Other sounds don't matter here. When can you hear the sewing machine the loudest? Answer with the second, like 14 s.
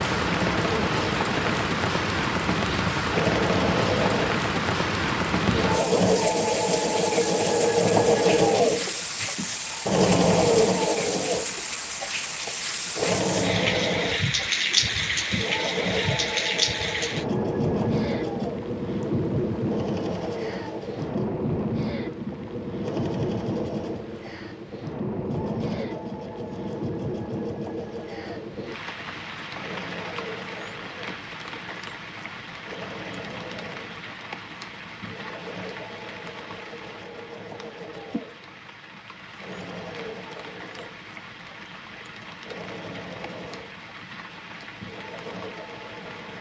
8 s.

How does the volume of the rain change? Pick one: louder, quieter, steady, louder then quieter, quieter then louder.
quieter.